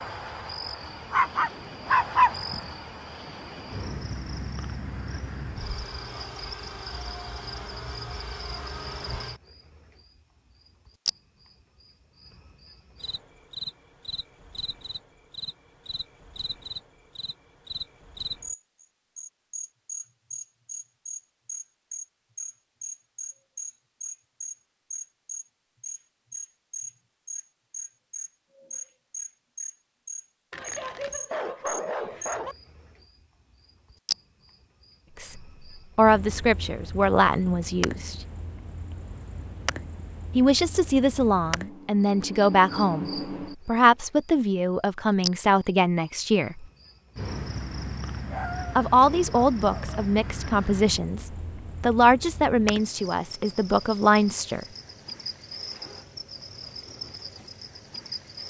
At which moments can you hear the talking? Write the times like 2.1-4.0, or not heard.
35.2-38.1, 40.4-46.6, 48.8-54.6.